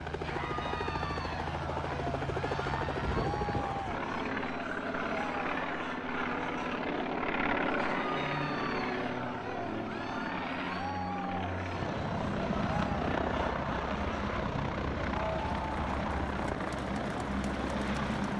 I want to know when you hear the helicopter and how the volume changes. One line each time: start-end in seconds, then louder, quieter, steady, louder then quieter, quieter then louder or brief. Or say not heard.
0.0-18.3 steady.